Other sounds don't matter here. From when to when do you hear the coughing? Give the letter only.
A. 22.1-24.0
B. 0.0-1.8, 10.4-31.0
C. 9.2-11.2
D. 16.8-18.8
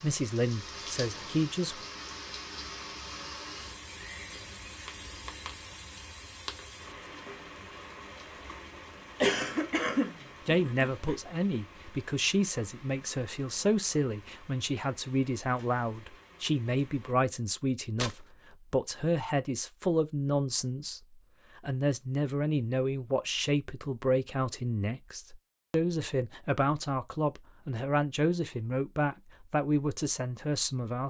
C.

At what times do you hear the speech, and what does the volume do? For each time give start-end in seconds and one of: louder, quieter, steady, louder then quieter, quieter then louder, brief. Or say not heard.
0.0-1.8 brief
10.4-31.0 steady.